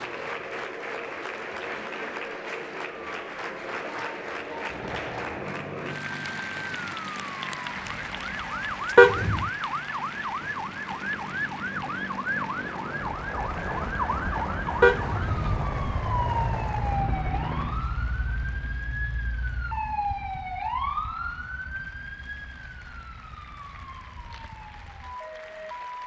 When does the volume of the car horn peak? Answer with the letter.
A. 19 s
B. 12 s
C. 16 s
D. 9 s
D.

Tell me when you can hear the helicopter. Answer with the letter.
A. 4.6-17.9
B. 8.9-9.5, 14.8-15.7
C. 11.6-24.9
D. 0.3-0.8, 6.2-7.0
A.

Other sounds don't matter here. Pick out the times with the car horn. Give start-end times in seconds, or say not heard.
8.9-9.5, 14.8-15.7.